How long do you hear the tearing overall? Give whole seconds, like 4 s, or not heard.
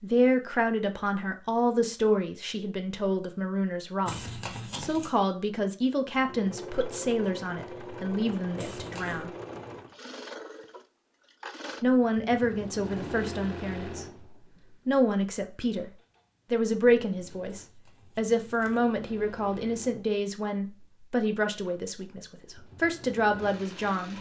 3 s.